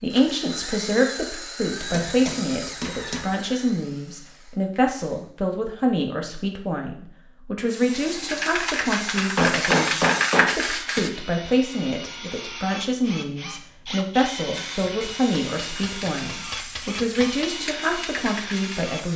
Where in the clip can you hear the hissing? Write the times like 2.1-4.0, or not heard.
7.7-11.1, 14.5-19.1.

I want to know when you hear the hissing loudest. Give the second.
10 s.